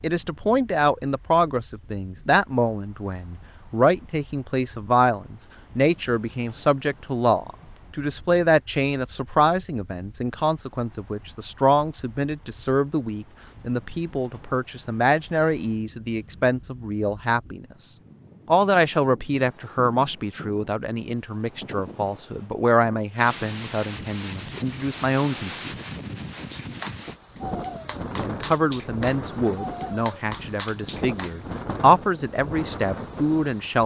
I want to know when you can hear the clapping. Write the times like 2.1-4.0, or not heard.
26.5-31.4.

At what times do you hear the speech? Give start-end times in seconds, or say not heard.
0.0-17.6, 18.4-25.8, 28.1-33.8.